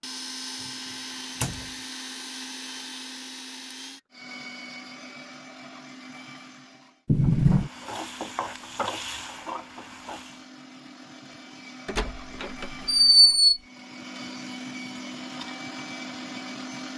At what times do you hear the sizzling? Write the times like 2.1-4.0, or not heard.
7.2-10.4.